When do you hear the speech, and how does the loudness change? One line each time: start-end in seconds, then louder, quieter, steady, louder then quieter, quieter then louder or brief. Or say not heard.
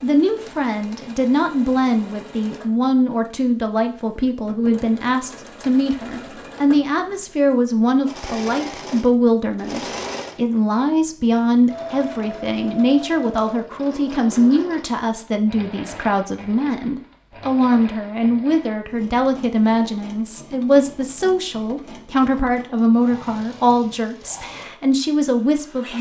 0.0-25.9 steady.